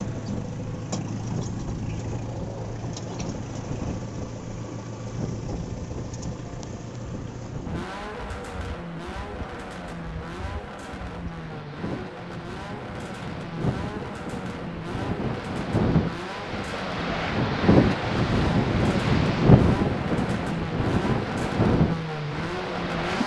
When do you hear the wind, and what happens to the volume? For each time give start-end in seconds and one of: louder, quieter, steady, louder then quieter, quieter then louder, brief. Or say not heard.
0.0-23.2 louder.